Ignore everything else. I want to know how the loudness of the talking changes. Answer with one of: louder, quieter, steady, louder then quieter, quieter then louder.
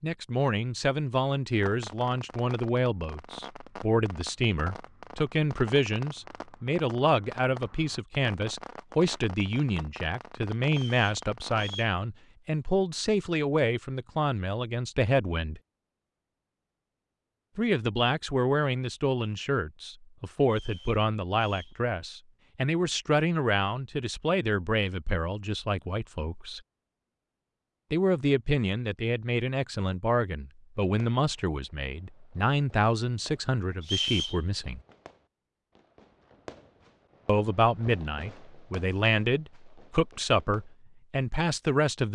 steady.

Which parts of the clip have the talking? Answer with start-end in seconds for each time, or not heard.
0.0-15.6, 17.6-26.6, 27.9-34.8, 37.2-42.1.